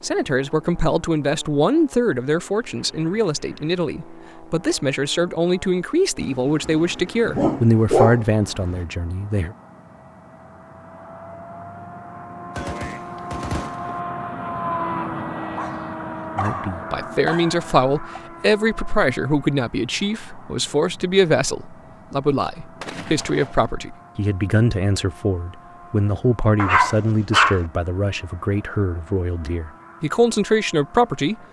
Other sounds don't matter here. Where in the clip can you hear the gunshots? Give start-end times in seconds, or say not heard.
12.6-14.0, 21.9-23.8.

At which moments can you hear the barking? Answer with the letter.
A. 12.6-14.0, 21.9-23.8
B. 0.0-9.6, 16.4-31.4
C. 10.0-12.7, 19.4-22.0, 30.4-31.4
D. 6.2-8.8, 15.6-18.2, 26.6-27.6
D.